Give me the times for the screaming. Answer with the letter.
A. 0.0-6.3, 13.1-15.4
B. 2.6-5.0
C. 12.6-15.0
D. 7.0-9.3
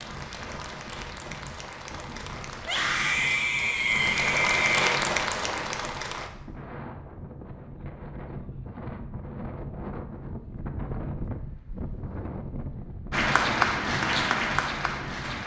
B.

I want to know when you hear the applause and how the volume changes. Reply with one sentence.
The applause can be heard from 0.0 to 6.3 s, getting louder; and briefly from 13.1 to 15.4 s.